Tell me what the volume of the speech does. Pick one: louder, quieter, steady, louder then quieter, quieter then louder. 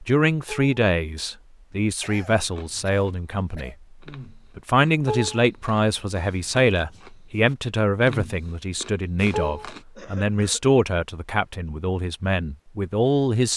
steady.